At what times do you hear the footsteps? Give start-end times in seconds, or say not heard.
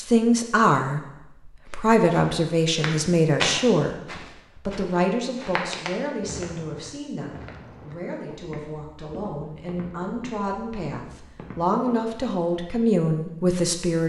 1.6-12.1.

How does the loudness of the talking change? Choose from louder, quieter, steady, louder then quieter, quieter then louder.
quieter then louder.